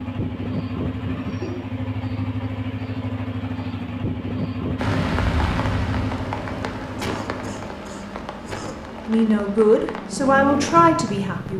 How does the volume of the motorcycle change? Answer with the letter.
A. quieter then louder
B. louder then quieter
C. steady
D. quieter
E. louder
A.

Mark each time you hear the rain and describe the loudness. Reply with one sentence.
The rain can be heard from 4.8 to 11.5 s, getting quieter.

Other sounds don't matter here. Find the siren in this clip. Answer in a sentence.
You can't hear the siren here.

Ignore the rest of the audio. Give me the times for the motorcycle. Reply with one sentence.
The motorcycle can be heard from 0.0 to 11.5 s.